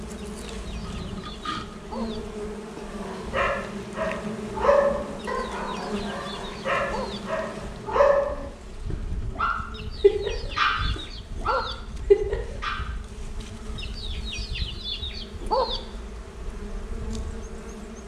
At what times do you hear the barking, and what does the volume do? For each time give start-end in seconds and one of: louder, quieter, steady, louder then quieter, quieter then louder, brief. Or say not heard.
2.9-12.8 quieter then louder.